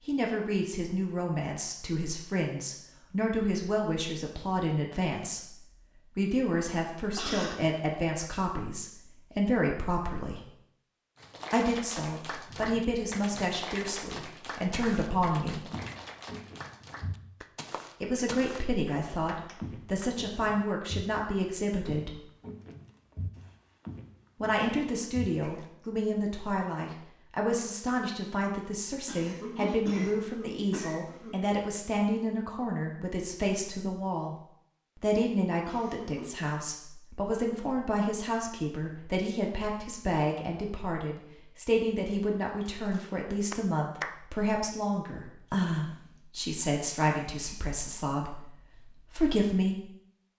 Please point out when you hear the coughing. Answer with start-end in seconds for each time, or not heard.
7.2-7.7, 29.1-31.4, 35.6-36.6.